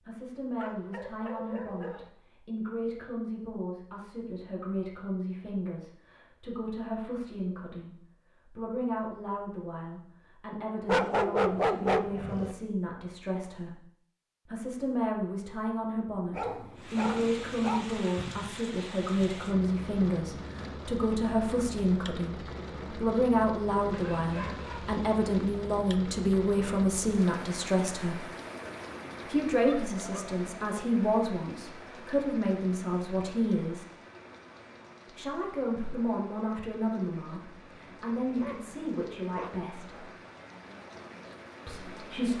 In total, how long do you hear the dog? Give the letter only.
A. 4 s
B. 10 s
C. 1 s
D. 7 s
B.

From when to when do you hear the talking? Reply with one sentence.
You can hear the talking from 0.0 to 13.8 s, from 14.4 to 28.2 s, from 29.2 to 33.9 s, from 35.1 to 40.0 s and from 41.6 to 42.3 s.